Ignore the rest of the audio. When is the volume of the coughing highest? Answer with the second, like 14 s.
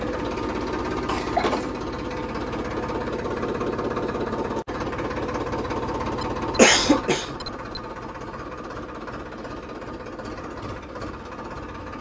7 s.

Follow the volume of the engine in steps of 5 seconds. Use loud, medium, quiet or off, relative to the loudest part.
loud, loud, medium.